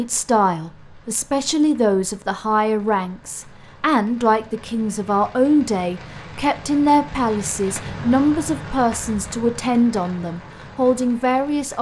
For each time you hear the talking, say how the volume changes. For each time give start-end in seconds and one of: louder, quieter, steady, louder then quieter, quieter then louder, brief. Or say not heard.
0.0-11.7 steady.